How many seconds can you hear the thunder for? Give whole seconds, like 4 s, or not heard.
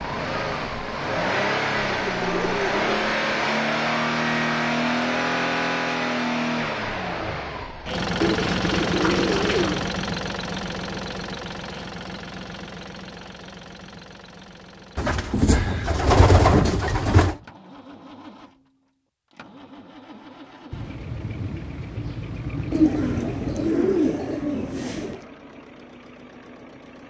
3 s.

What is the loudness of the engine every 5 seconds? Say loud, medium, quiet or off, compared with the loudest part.
loud, loud, medium, quiet, quiet, quiet.